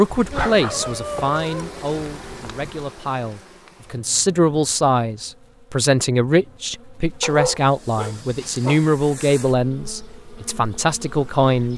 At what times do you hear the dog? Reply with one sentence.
The dog can be heard from 0.1 to 2.9 s and from 7.2 to 8.8 s.